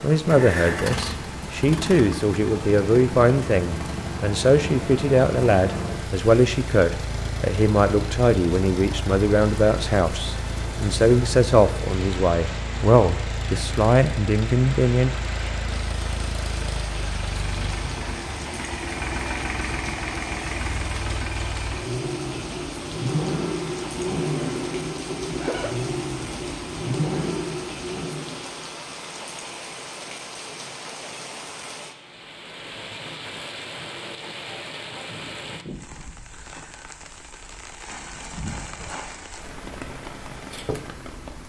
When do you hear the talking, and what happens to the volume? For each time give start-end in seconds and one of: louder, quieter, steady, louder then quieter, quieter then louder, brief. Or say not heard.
0.0-15.1 steady.